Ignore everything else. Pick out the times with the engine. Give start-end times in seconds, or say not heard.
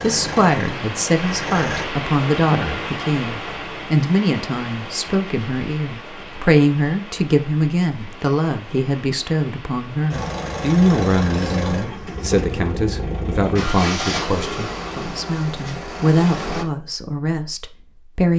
0.0-1.9, 10.1-16.6.